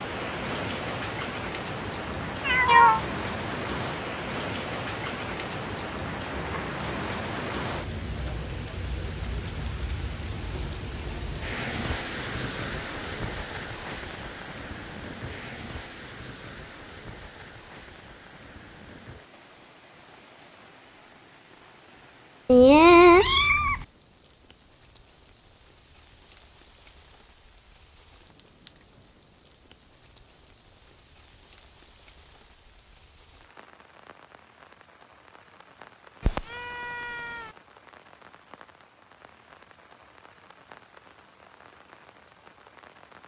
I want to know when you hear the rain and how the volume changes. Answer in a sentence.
You can hear the rain from 0.0 to 43.2 s, getting quieter.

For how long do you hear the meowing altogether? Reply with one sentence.
The meowing can be heard for 3 seconds in total.